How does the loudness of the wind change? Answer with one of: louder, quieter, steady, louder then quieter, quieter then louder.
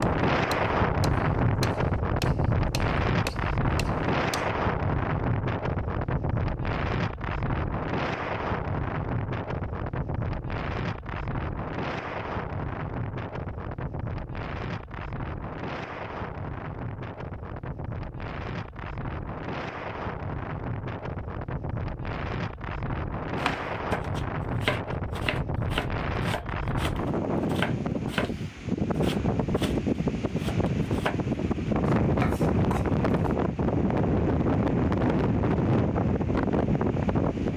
quieter then louder.